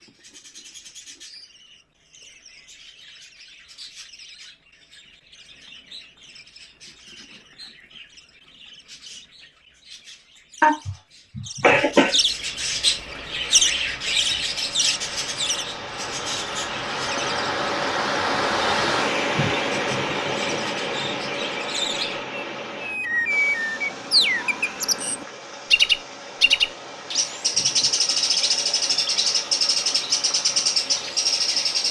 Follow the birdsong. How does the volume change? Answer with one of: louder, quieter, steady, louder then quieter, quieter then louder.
louder.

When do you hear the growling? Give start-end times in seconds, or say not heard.
not heard.